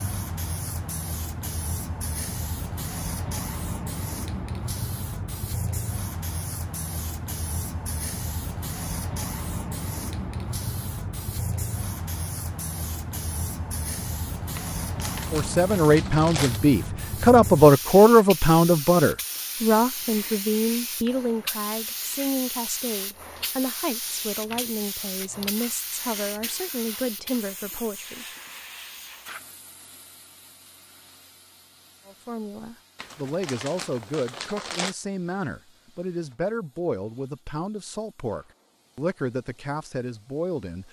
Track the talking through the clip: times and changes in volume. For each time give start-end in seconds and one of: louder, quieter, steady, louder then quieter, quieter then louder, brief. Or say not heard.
15.3-28.2 quieter
32.0-40.8 steady.